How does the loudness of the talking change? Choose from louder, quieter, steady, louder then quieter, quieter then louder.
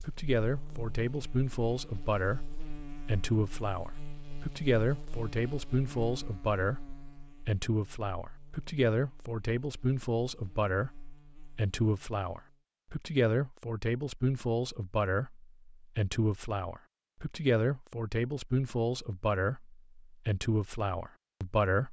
steady.